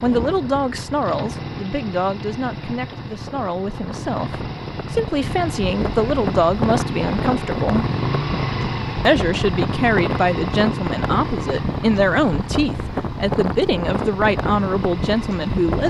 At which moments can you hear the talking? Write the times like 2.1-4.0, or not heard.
0.0-7.8, 9.1-15.8.